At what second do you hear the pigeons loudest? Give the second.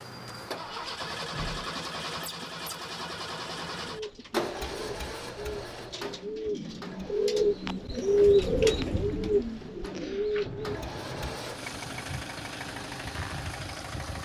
8 s.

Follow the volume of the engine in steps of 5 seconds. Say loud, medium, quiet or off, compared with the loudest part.
loud, medium, loud.